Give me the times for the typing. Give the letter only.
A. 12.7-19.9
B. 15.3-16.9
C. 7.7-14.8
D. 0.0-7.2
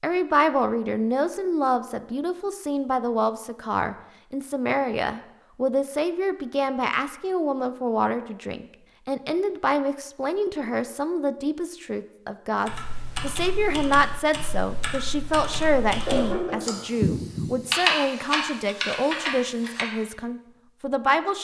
A.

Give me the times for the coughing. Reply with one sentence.
You can hear the coughing from 15.3 to 16.9 s.